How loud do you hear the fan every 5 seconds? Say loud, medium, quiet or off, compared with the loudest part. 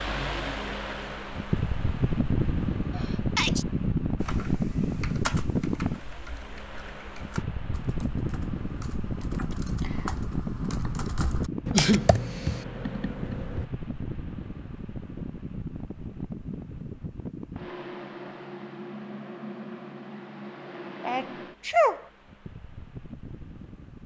loud, loud, medium, medium, quiet.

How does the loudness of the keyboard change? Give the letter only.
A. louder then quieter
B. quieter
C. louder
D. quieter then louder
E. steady
D.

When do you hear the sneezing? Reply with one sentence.
The sneezing can be heard from 3.0 to 3.6 s, from 11.7 to 12.5 s and from 21.0 to 22.0 s.